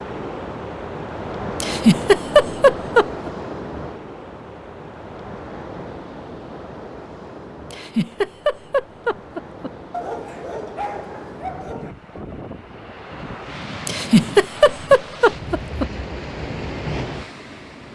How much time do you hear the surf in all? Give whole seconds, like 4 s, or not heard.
18 s.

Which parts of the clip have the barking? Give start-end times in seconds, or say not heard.
9.9-11.9.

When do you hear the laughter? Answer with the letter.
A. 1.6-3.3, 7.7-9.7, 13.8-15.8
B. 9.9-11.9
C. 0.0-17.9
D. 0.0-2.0
A.